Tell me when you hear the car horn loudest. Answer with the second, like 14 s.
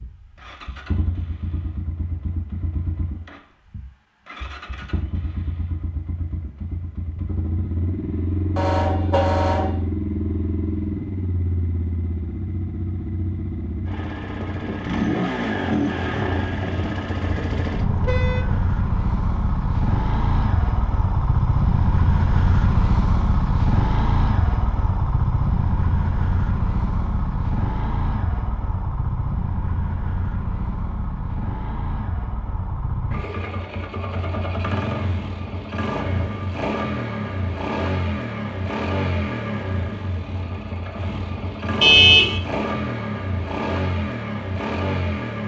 42 s.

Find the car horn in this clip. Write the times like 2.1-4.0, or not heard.
8.6-9.8, 17.2-18.6, 41.8-42.4.